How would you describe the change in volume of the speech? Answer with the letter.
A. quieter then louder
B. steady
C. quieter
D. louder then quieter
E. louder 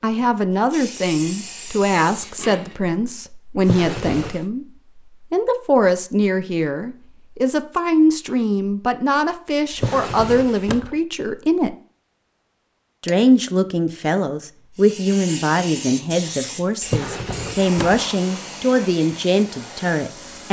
B.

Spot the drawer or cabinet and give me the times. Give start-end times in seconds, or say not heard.
3.6-4.4, 9.7-10.9, 16.8-18.1.